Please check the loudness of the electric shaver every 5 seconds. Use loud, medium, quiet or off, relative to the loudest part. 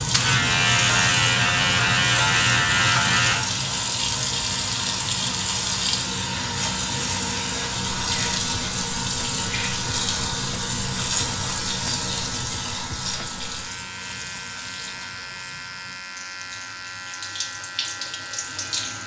loud, quiet, quiet, quiet.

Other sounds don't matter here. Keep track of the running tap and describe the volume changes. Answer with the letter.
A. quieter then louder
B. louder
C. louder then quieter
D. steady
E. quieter
E.